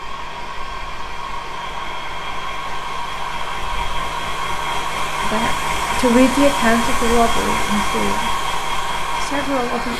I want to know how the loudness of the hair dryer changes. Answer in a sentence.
The loudness of the hair dryer goes up.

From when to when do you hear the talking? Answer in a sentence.
You can hear the talking from 5.2 to 8.3 s and from 9.2 to 9.9 s.